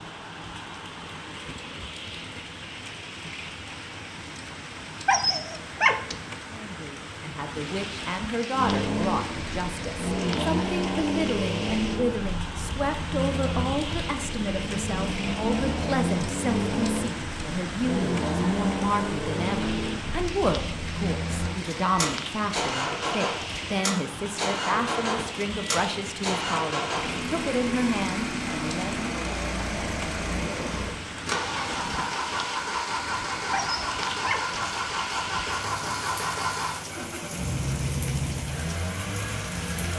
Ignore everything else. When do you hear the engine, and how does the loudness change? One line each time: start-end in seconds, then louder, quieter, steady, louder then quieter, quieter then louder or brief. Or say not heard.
8.5-39.9 steady.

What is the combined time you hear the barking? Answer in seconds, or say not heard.
2 s.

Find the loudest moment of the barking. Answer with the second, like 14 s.
6 s.